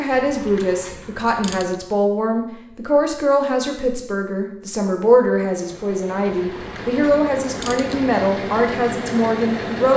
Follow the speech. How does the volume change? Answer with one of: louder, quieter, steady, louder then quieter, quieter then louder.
steady.